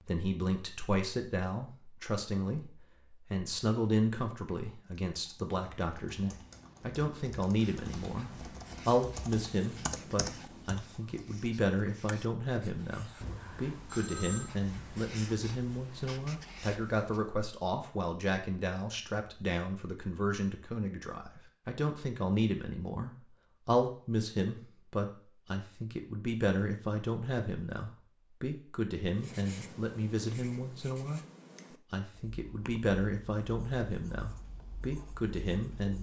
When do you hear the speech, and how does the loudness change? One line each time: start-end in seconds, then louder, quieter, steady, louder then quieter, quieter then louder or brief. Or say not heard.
0.1-31.2 steady
31.9-35.9 quieter then louder.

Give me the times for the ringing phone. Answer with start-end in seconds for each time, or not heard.
13.2-14.5.